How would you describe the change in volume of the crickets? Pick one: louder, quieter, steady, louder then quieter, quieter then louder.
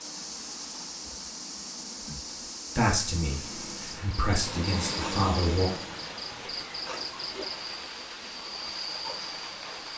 steady.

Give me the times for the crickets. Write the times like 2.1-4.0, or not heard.
0.0-9.9.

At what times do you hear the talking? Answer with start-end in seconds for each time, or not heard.
2.8-5.7.